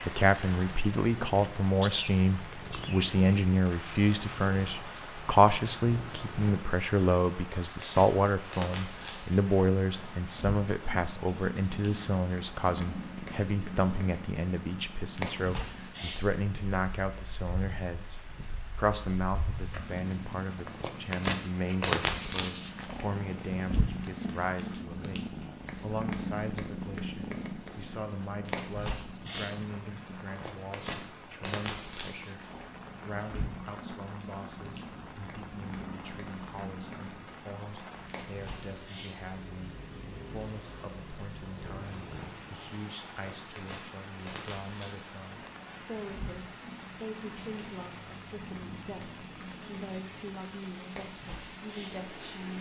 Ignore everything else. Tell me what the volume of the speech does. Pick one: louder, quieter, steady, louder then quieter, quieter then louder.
quieter.